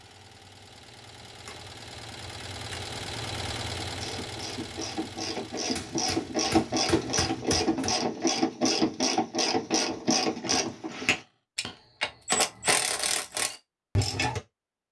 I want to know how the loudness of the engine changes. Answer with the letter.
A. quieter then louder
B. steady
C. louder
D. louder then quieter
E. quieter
D.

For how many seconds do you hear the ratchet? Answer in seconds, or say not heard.
11 s.